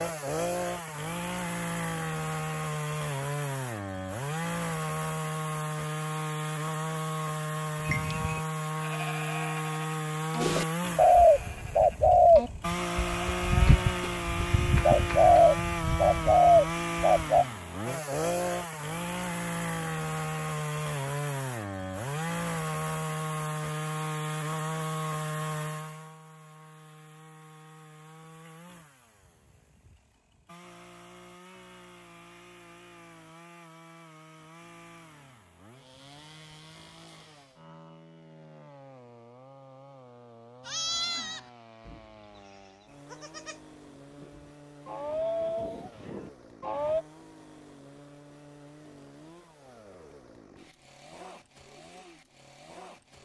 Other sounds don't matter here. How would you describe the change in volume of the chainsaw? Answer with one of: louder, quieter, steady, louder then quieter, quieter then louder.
quieter.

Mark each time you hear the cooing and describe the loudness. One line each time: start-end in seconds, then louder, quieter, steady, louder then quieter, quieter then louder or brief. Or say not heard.
10.4-17.4 quieter then louder.